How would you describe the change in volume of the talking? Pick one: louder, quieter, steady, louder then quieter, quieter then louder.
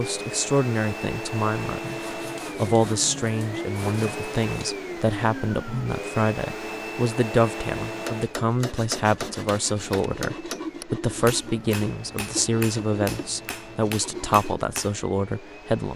steady.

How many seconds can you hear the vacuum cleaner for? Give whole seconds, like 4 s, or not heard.
16 s.